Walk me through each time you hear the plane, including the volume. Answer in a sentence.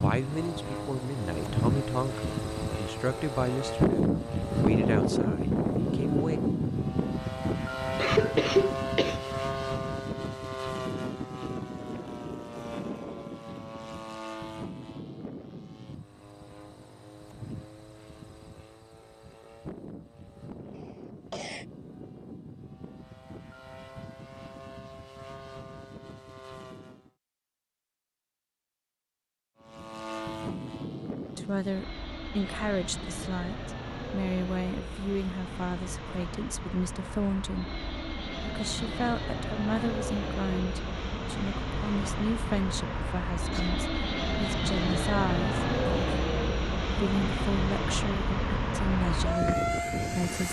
The plane can be heard from 0.0 to 27.1 s, getting quieter; and from 29.6 to 50.4 s, getting louder.